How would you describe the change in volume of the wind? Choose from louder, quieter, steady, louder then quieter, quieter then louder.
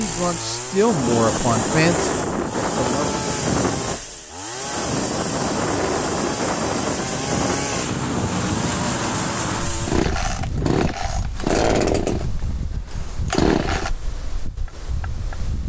quieter.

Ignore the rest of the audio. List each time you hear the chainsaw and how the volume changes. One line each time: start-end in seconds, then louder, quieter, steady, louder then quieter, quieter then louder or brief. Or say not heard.
0.0-13.9 louder.